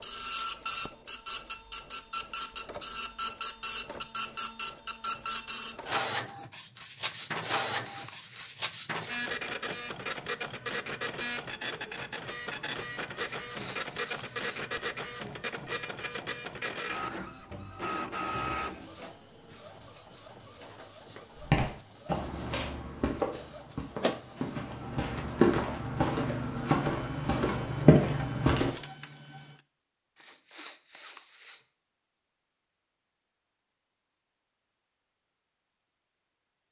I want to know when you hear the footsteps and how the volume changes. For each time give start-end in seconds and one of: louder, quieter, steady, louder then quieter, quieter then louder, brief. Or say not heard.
21.4-28.7 louder.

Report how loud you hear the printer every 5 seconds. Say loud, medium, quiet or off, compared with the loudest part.
loud, loud, loud, loud, medium, quiet, off, off.